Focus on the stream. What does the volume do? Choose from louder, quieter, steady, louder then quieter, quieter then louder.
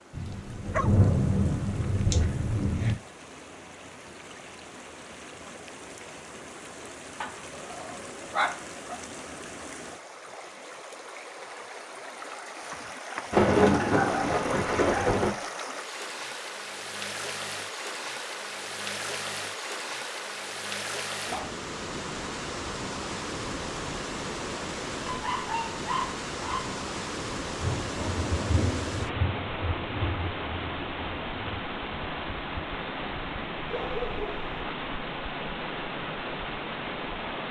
louder.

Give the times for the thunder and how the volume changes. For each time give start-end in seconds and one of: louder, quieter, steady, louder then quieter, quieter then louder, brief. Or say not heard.
0.1-3.0 brief
13.3-15.3 brief
27.6-31.6 quieter.